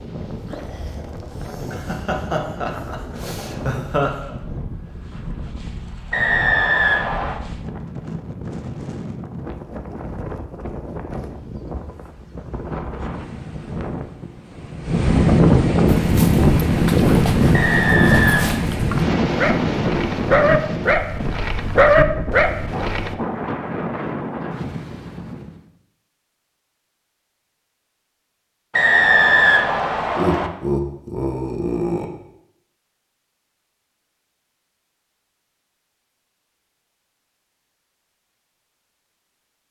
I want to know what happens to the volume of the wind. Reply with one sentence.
The volume of the wind goes up, then down.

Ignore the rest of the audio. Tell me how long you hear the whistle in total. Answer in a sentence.
You can hear the whistle for 4 seconds altogether.